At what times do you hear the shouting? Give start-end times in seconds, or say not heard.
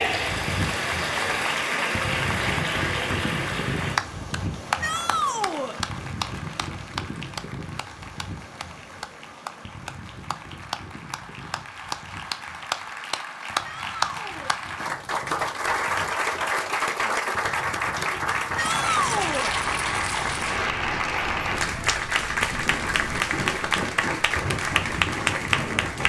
4.8-5.8, 13.6-14.6, 18.6-19.5.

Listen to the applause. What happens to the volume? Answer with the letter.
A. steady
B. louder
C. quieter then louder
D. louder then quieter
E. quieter
C.